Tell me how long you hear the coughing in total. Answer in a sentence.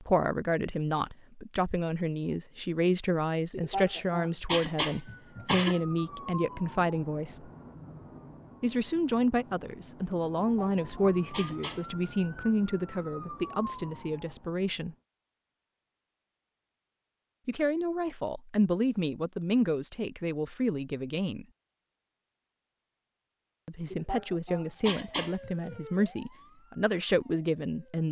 The coughing can be heard for 6 seconds in total.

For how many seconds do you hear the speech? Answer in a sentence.
You can hear the speech for 22 seconds altogether.